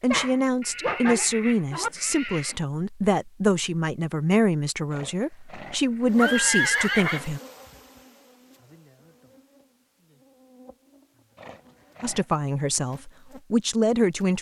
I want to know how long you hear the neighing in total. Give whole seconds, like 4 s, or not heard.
5 s.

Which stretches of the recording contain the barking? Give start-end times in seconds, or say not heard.
0.1-1.9.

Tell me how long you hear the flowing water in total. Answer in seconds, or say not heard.
not heard.